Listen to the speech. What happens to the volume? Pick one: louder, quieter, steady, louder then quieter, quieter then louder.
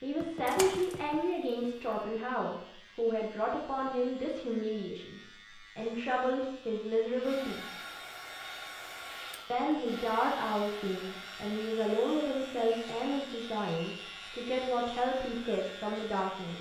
steady.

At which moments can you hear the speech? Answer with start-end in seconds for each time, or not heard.
0.0-7.7, 9.5-16.5.